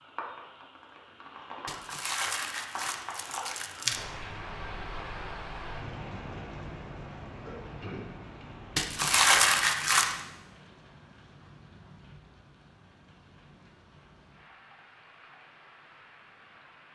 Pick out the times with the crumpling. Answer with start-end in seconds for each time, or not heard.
1.6-4.0, 8.8-10.2.